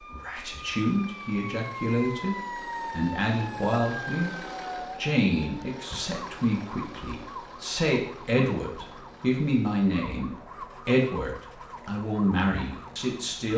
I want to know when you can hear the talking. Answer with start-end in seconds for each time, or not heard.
0.0-13.5.